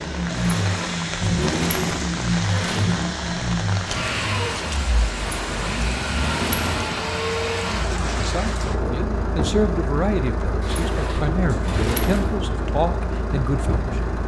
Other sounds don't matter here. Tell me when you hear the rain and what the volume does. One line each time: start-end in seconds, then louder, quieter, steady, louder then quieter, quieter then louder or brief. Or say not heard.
0.0-14.2 steady.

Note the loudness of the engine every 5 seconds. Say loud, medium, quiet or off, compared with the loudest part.
loud, loud, medium.